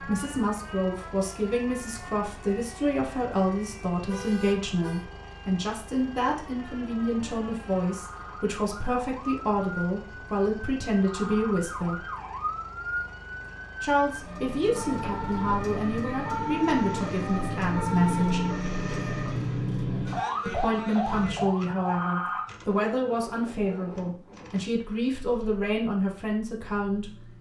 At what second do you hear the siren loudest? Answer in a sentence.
The loudest moment of the siren is at 18 seconds.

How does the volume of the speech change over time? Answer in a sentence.
The loudness of the speech stays about the same.